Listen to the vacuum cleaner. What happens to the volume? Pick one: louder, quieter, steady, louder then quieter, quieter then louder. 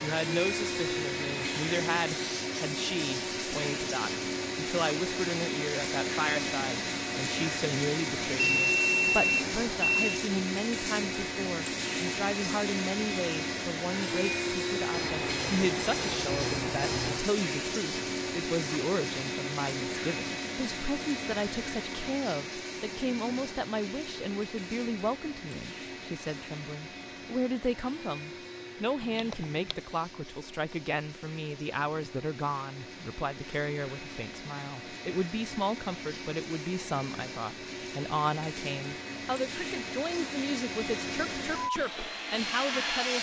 quieter then louder.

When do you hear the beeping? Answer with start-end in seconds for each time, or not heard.
8.3-10.2, 14.9-17.3, 29.1-29.8.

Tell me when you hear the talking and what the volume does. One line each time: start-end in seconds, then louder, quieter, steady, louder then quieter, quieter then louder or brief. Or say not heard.
0.0-43.1 steady.